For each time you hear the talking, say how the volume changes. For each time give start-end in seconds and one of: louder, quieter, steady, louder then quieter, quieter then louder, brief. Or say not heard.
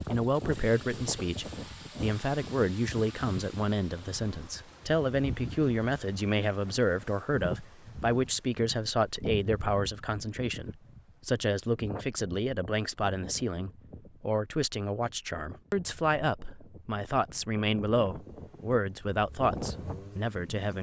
0.1-20.7 steady.